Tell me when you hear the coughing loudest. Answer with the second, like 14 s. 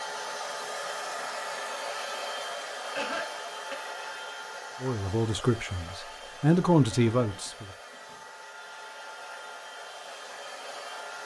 3 s.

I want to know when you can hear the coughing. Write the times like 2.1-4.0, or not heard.
3.0-3.8, 6.9-8.2.